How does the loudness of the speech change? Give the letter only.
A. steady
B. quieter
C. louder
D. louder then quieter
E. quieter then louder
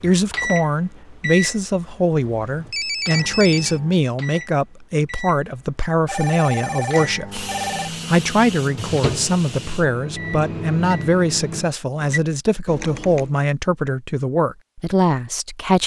A.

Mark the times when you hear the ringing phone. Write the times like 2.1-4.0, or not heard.
2.1-3.8, 6.0-7.9, 12.7-13.3.